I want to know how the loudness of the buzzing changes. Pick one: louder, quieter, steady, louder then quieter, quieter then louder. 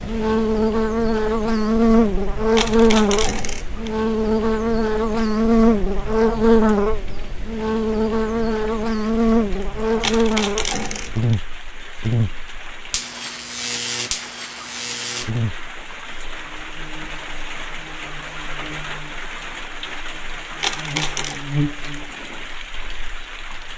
quieter.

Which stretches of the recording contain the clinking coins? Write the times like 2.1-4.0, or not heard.
2.5-4.0, 10.0-11.4, 20.6-21.4.